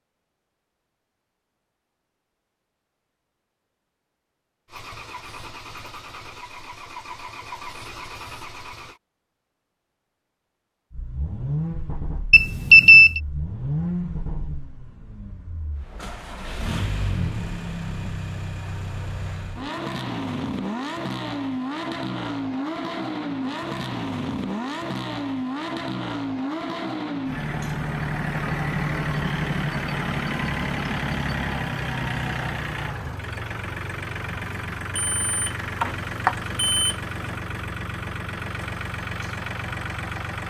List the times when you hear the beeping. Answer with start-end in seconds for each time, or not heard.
12.3-13.2, 35.0-37.0.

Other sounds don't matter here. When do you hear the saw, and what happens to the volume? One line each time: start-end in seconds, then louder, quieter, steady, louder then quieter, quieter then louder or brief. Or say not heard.
not heard.